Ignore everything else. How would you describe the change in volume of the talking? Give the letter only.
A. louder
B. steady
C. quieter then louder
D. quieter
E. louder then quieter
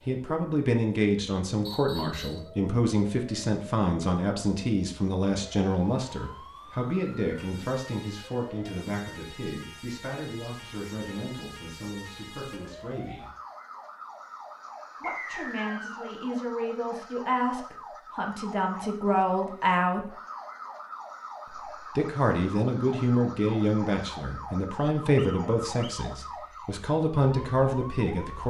C.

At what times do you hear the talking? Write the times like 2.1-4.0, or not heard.
0.1-13.3, 15.0-20.1, 21.5-28.4.